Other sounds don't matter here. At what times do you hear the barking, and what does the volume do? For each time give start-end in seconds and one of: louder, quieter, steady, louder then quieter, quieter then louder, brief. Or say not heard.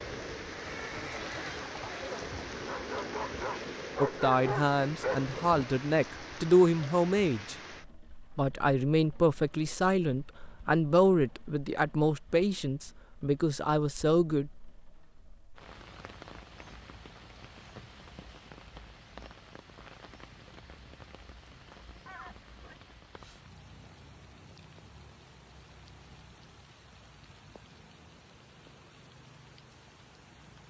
0.0-5.7 louder.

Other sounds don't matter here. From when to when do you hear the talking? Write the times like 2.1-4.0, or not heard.
4.0-7.5, 8.3-14.5.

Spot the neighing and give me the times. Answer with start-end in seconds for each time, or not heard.
0.5-2.5, 22.1-22.8.